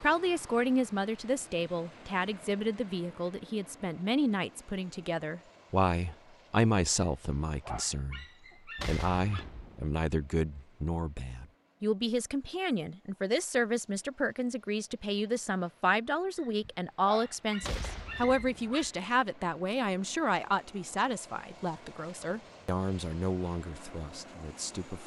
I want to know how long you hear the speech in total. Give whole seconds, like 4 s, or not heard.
25 s.